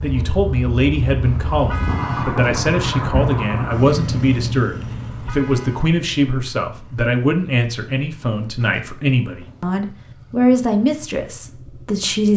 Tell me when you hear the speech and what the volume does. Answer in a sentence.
You can hear the speech from 0.0 to 12.3 s, at a steady volume.